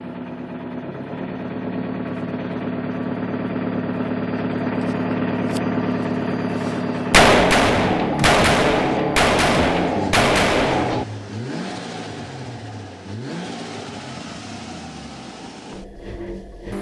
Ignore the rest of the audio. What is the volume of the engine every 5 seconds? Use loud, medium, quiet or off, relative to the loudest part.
loud, loud, medium, medium.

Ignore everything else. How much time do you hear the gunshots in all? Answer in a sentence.
You can hear the gunshots for 4 seconds altogether.